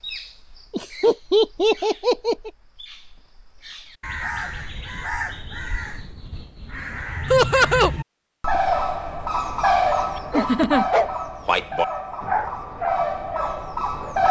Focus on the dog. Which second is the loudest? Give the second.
12 s.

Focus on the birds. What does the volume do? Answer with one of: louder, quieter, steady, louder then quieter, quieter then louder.
louder then quieter.